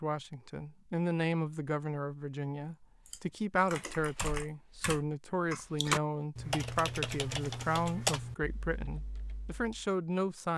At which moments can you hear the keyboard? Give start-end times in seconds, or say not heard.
3.0-9.8.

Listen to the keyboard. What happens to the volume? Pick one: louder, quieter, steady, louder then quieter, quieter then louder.
louder then quieter.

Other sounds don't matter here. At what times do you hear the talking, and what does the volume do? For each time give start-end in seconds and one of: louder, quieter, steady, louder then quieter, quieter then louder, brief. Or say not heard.
0.0-10.5 steady.